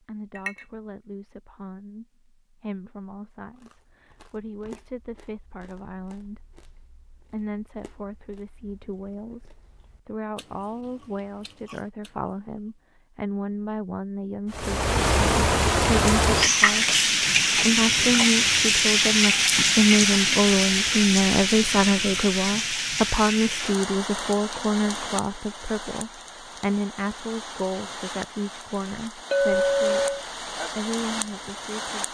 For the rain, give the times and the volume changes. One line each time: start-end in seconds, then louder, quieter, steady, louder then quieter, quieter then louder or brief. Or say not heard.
14.5-32.0 quieter.